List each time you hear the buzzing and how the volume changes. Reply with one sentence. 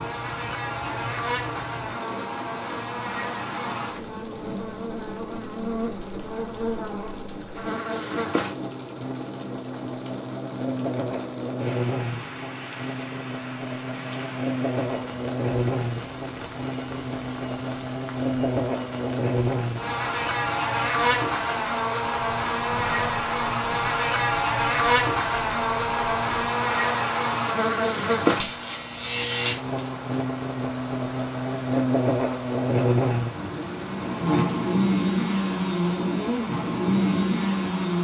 You can hear the buzzing from 0.0 to 37.9 s, getting louder.